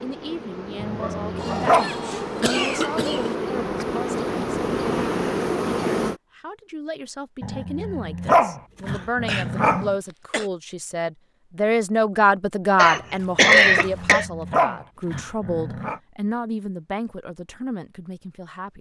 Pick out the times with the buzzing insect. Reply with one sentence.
You can hear the buzzing insect from 0.0 to 6.2 s.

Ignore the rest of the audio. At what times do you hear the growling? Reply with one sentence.
The growling can be heard from 0.8 to 1.9 s, from 7.4 to 9.9 s and from 13.7 to 16.0 s.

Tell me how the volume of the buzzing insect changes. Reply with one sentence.
The volume of the buzzing insect goes up.